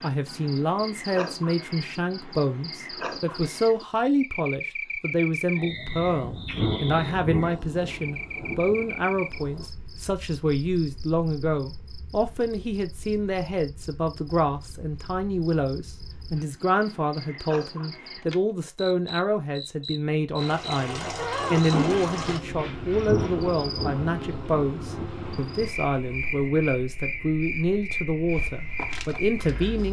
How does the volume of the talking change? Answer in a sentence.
The loudness of the talking stays about the same.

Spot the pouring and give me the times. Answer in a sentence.
The pouring can be heard from 20.4 to 22.4 s.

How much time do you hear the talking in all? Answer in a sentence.
You can hear the talking for 30 seconds altogether.